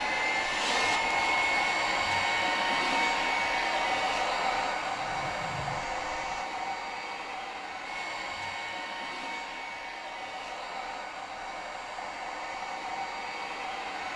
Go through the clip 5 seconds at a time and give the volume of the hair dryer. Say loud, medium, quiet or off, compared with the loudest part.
loud, medium, medium.